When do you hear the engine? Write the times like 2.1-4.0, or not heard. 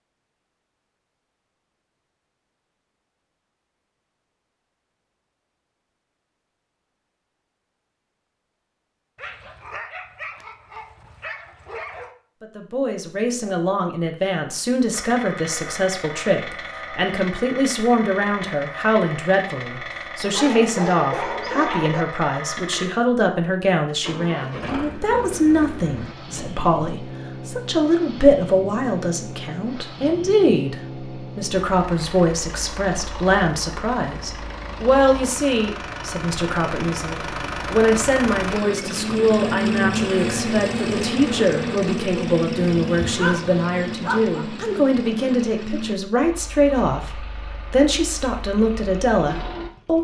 14.9-49.9.